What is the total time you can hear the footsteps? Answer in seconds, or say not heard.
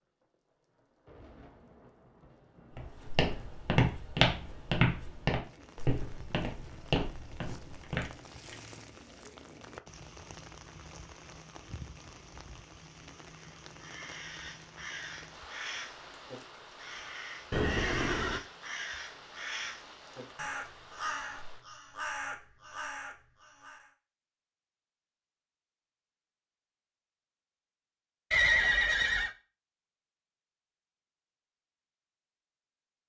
5 s.